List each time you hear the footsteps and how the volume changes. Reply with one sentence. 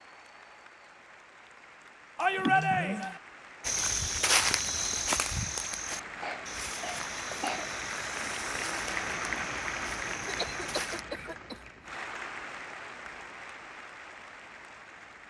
The footsteps can be heard from 3.6 to 11.1 s, getting quieter.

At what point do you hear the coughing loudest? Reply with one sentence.
The loudest moment of the coughing is at 3 seconds.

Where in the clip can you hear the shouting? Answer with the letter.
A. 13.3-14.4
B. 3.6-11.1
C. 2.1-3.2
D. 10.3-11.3
C.